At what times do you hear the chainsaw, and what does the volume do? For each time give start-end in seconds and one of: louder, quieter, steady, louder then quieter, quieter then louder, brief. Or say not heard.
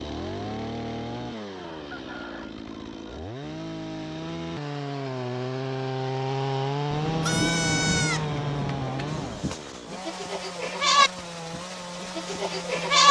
0.0-13.0 louder then quieter.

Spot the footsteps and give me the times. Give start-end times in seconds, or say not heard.
not heard.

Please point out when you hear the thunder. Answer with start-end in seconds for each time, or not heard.
6.9-9.4.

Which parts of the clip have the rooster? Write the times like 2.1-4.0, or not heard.
1.6-3.1.